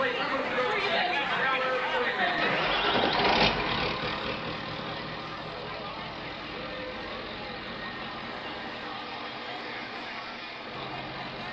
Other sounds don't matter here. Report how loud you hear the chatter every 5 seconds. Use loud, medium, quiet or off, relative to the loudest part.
loud, quiet, quiet.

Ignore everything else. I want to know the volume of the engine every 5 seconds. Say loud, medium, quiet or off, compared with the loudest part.
loud, medium, medium.